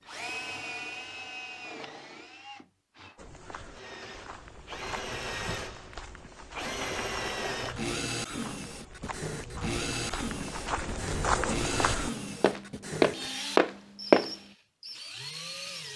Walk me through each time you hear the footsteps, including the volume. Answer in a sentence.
The footsteps can be heard from 3.1 to 14.3 s, getting louder.